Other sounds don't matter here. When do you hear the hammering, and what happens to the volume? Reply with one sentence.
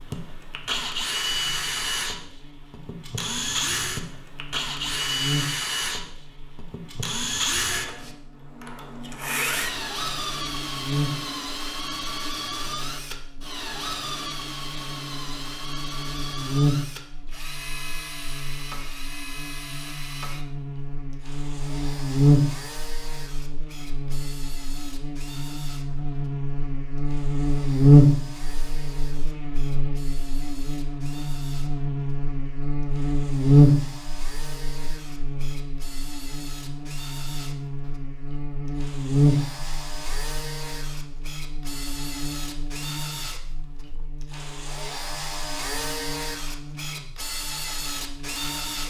The hammering can't be heard in this clip.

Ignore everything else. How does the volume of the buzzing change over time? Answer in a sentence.
The loudness of the buzzing goes up, then down.